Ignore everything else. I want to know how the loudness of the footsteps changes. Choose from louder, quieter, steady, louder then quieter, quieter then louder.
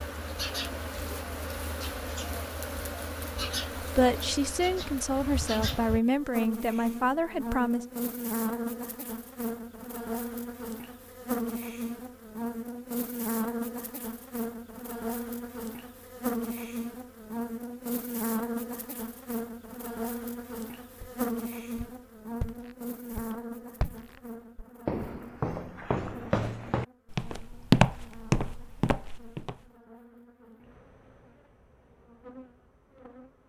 louder.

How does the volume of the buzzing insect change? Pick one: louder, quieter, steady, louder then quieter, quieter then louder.
quieter.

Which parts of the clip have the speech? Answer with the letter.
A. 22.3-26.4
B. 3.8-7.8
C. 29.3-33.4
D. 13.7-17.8
B.